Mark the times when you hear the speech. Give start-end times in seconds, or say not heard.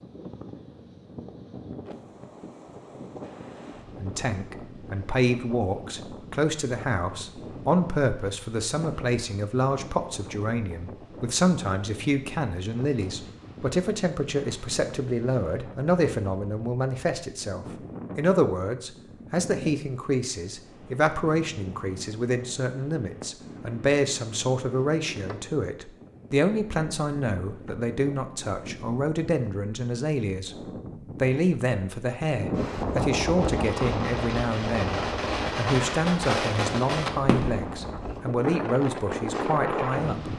4.0-30.6, 31.1-40.3.